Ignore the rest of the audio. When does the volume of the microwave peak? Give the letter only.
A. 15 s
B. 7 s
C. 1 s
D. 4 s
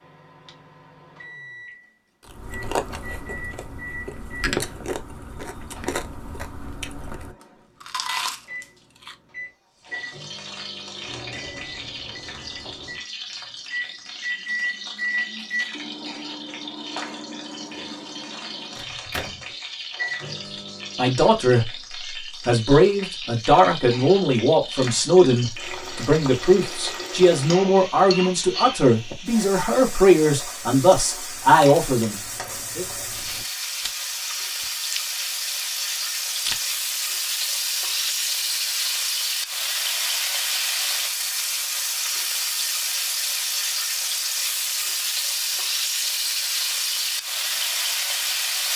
A.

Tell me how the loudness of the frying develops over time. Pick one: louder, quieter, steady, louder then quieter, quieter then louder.
louder.